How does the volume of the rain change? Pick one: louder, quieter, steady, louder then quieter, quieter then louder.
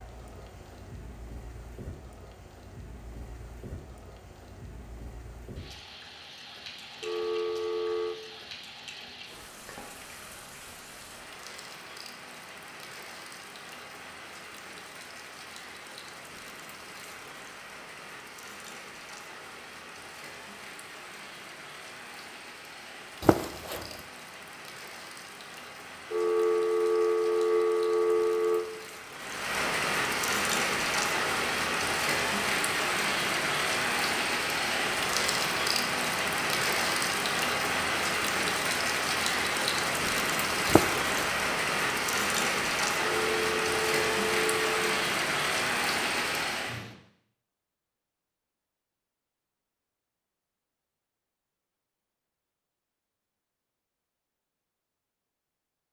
louder.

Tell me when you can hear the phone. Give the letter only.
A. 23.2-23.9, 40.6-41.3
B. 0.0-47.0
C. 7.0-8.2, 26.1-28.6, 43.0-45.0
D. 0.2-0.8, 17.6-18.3
C.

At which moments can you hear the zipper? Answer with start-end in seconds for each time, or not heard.
23.2-23.9, 40.6-41.3.